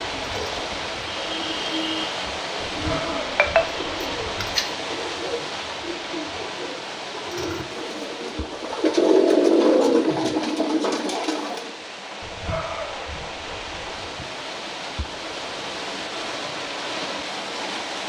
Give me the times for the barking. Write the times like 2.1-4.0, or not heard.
2.6-4.6, 12.2-14.1.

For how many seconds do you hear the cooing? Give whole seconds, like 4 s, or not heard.
12 s.